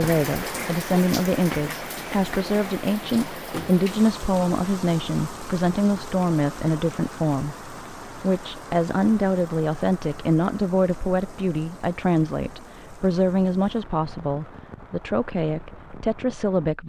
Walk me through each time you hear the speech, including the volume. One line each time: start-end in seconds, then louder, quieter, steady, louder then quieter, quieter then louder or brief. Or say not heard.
0.0-16.8 steady.